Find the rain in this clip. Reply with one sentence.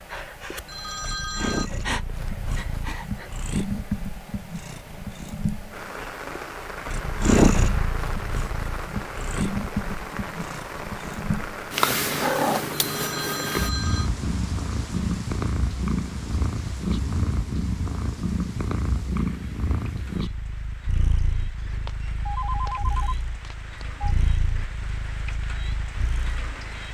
You can hear the rain from 5.7 to 26.8 s.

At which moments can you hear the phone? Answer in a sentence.
You can hear the phone from 0.7 to 1.7 s, from 12.7 to 14.1 s and from 21.6 to 24.1 s.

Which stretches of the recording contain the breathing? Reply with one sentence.
The breathing can be heard from 0.0 to 3.3 s.